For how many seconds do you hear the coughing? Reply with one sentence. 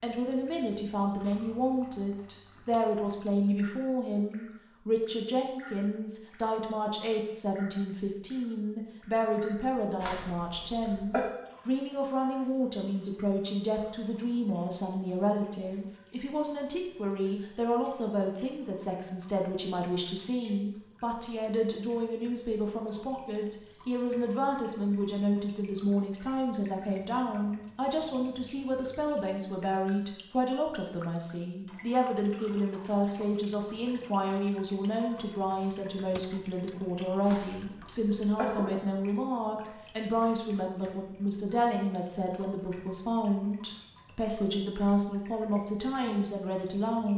You can hear the coughing for 3 seconds altogether.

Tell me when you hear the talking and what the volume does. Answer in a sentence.
The talking can be heard from 0.0 to 47.1 s, at a steady volume.